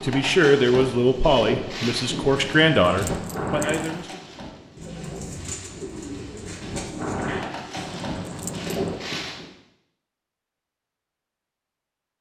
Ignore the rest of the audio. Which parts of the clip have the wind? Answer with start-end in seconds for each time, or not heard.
0.0-9.5.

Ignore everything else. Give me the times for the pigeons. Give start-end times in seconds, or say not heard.
4.8-7.5.